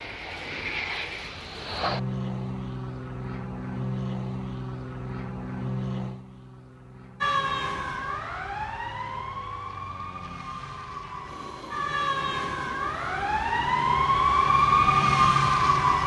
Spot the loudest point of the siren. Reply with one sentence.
The loudest moment of the siren is at 15 seconds.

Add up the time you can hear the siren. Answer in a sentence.
The siren can be heard for 9 seconds in total.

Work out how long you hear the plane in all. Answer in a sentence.
You can hear the plane for 16 seconds altogether.